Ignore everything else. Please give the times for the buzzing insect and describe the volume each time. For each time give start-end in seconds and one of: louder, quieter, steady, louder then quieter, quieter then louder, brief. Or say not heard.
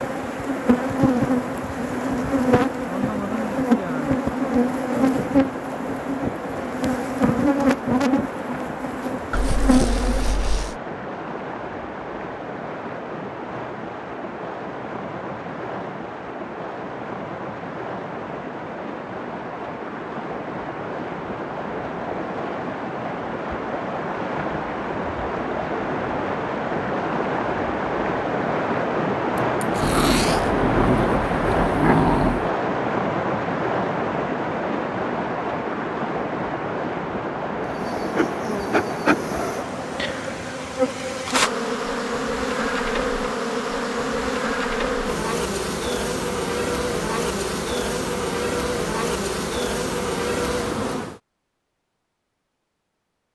0.0-10.4 steady
37.6-51.1 steady.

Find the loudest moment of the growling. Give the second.
32 s.